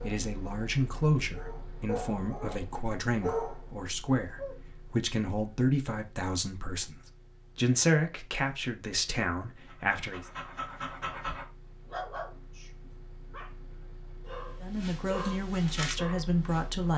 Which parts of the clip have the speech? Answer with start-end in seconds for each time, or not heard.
0.0-10.2, 14.6-16.9.